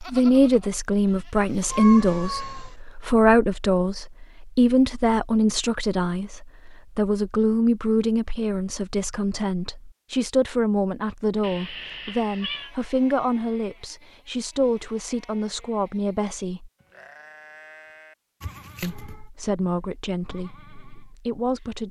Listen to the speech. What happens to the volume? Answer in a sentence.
The loudness of the speech goes down.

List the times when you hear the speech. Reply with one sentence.
The speech can be heard from 0.0 to 16.7 s and from 18.8 to 21.8 s.